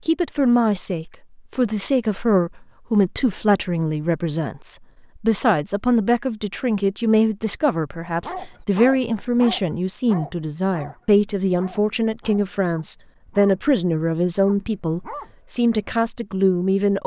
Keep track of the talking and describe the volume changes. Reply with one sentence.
The volume of the talking stays about the same.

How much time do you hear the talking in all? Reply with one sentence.
The talking can be heard for 17 seconds in total.